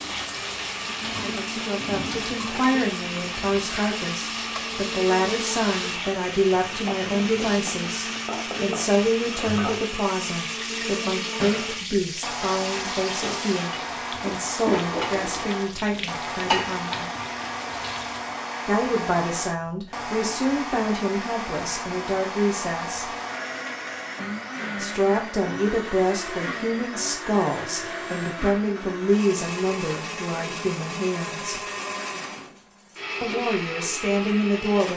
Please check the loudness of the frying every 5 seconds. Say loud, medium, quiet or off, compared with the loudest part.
loud, loud, loud, loud, off, off, off.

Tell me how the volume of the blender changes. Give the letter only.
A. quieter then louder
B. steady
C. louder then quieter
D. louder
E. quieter
B.